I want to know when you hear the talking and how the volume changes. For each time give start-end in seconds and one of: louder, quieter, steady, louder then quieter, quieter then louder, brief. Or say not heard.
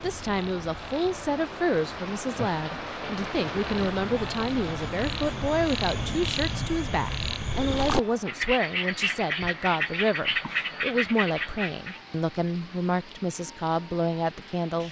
0.0-14.8 steady.